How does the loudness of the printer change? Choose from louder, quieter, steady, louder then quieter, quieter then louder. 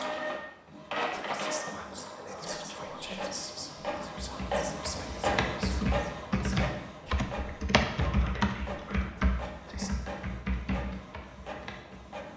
quieter.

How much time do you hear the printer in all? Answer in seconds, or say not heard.
12 s.